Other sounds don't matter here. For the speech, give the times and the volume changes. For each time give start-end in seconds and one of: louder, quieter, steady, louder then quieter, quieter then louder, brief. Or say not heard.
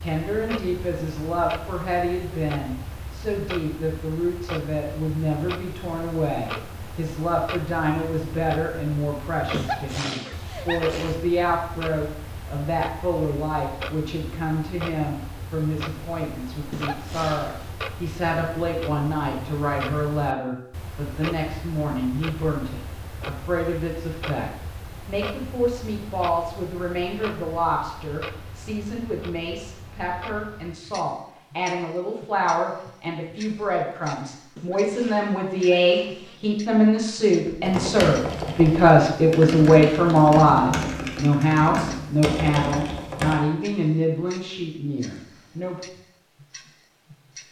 0.0-45.8 louder.